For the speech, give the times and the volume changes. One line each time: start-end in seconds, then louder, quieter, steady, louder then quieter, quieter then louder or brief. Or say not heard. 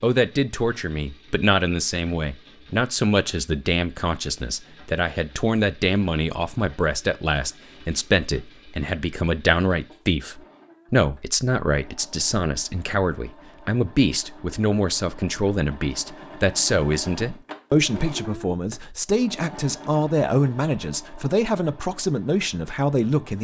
0.0-23.3 steady.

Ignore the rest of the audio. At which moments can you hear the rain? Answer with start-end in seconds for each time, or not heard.
not heard.